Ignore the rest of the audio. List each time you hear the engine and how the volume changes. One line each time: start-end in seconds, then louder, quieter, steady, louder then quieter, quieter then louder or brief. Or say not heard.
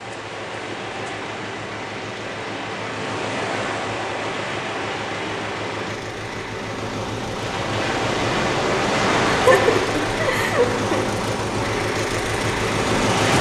0.0-13.3 louder.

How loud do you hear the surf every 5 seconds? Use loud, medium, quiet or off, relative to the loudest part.
medium, loud, loud.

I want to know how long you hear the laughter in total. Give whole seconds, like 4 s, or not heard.
2 s.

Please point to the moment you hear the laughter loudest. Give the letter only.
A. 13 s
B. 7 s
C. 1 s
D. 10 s
D.